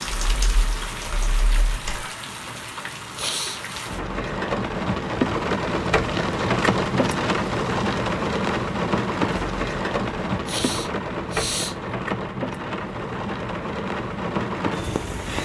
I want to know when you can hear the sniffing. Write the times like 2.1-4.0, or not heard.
3.1-3.6, 10.4-11.8.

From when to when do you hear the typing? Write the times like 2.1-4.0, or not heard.
0.0-2.0.